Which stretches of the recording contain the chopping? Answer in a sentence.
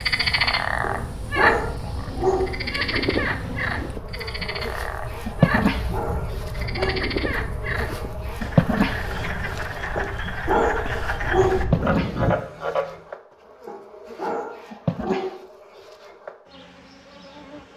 You can't hear the chopping here.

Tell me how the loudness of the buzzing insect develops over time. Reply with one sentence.
The volume of the buzzing insect goes up, then down.